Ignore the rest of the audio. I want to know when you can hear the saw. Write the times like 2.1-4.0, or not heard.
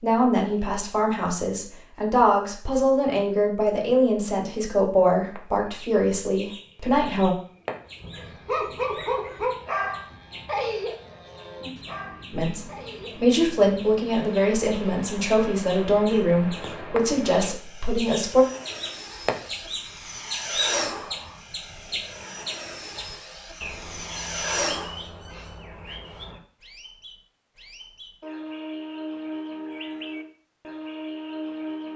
not heard.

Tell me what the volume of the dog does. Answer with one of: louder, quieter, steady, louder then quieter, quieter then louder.
quieter.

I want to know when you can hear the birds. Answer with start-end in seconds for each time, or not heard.
5.3-31.9.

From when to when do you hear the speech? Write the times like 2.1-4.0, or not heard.
0.0-7.3, 12.3-18.4.